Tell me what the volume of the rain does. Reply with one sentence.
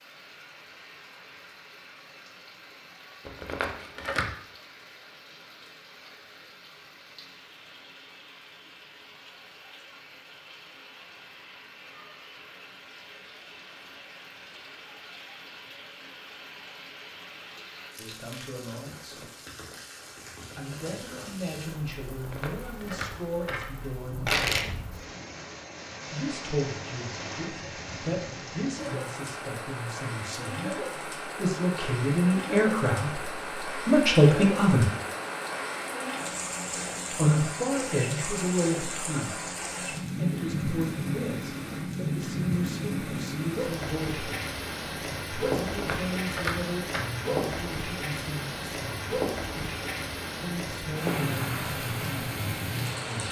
The volume of the rain goes up.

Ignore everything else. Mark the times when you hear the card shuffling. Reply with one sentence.
You can hear the card shuffling from 3.2 to 4.3 s, from 22.2 to 24.6 s and from 45.6 to 47.0 s.